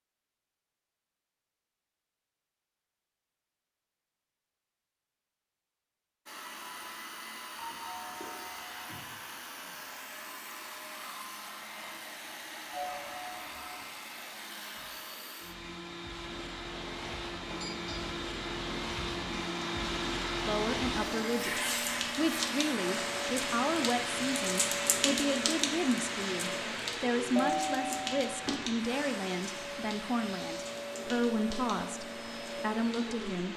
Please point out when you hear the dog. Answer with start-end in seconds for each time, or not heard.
not heard.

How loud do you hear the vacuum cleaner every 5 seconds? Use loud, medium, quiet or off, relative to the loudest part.
off, medium, medium, loud, loud, medium, medium.